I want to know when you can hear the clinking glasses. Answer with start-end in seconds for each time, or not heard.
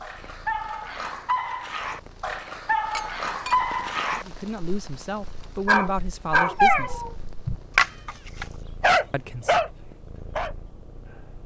2.9-3.5.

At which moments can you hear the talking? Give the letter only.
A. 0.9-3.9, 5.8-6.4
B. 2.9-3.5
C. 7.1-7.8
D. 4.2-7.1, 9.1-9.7
D.